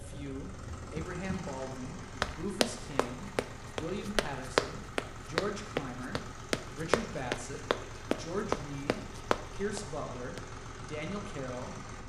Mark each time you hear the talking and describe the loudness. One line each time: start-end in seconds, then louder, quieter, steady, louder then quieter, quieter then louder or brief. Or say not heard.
0.0-11.8 steady.